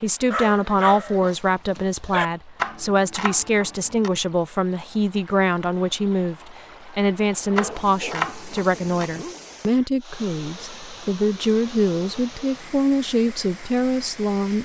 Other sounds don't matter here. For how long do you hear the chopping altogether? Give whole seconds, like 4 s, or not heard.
3 s.